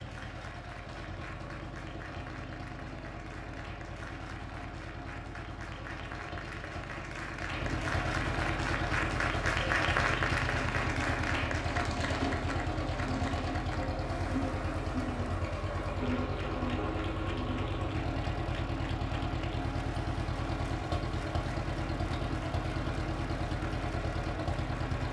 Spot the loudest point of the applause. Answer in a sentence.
The volume of the applause peaks at 10 seconds.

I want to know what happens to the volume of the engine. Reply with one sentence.
The volume of the engine goes up.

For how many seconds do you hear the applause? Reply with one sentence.
The applause can be heard for 25 seconds in total.